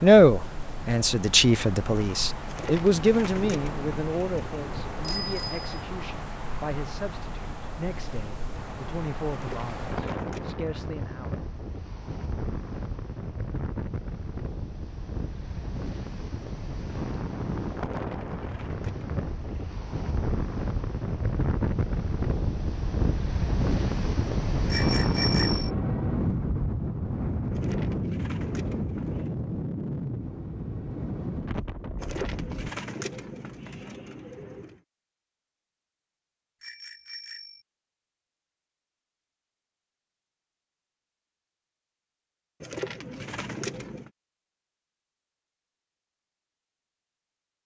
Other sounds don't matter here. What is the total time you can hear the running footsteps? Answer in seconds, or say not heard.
not heard.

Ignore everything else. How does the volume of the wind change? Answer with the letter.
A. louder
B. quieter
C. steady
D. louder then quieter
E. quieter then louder
A.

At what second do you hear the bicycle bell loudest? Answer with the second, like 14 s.
25 s.